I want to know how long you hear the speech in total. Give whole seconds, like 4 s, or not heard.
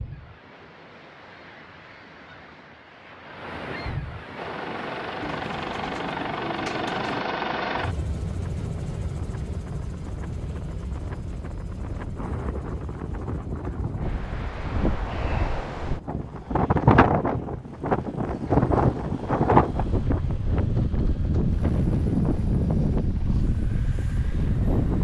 not heard.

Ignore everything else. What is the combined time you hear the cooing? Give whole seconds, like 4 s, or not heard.
2 s.